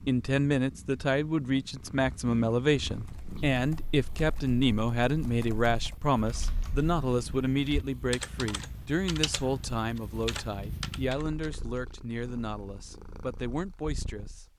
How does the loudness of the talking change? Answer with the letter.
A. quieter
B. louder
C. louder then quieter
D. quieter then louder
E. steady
A.